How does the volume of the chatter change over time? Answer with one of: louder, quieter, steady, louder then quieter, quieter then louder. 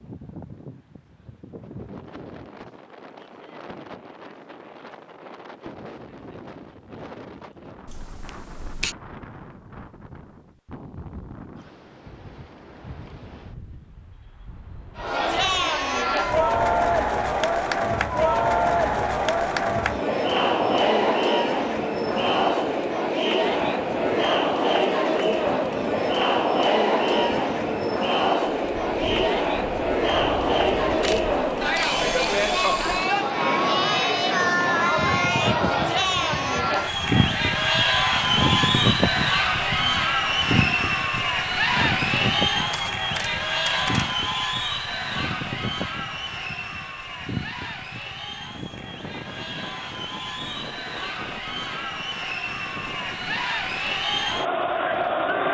quieter.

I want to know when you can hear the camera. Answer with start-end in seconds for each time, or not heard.
7.8-8.9, 31.0-33.1, 42.7-44.1.